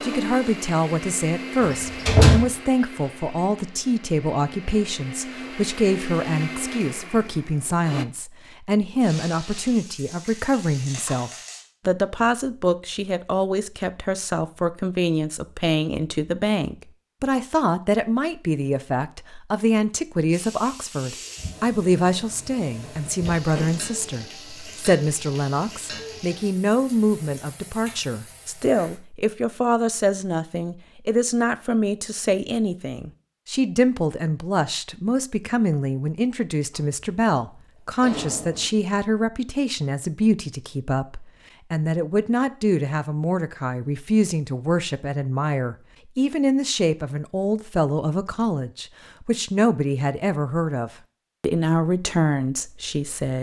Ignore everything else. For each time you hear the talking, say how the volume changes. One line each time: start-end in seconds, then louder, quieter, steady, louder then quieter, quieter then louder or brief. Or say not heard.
0.0-53.3 steady.